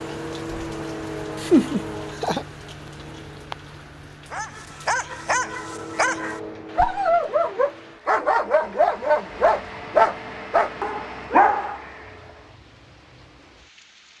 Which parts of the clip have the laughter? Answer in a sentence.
The laughter can be heard from 1.4 to 2.5 s.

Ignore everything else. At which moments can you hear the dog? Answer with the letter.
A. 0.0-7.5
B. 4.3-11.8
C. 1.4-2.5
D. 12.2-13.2
B.